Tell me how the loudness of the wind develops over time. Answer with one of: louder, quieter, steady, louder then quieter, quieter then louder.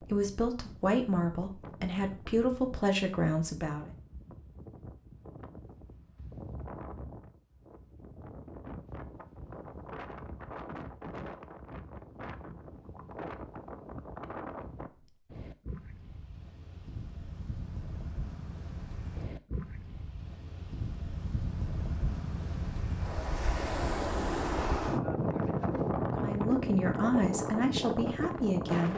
louder.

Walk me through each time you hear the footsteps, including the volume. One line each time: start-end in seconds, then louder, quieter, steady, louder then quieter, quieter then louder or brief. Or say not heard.
not heard.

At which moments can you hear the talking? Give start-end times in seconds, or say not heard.
0.0-3.9, 26.2-28.9.